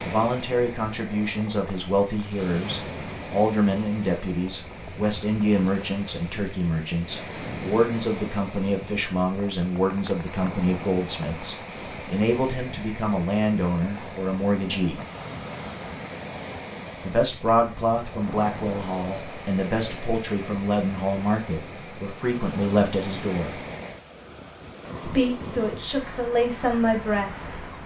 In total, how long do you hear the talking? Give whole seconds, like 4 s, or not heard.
24 s.